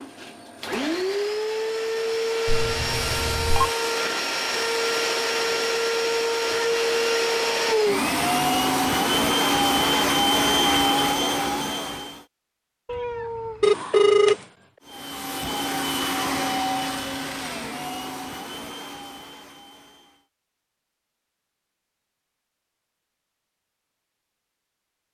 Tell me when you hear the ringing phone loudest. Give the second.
14 s.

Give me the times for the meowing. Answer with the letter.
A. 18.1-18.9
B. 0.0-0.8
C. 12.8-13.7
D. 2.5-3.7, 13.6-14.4
C.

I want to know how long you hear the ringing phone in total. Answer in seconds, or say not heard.
2 s.